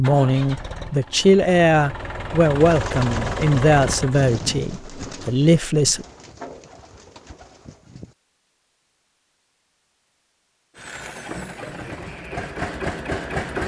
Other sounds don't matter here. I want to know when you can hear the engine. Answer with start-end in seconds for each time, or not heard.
0.0-4.2, 10.8-13.6.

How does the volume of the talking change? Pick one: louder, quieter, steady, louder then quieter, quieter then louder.
steady.